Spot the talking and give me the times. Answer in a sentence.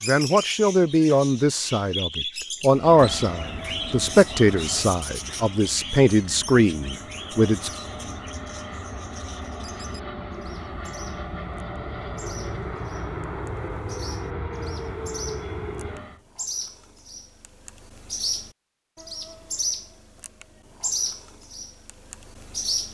The talking can be heard from 0.1 to 7.7 s.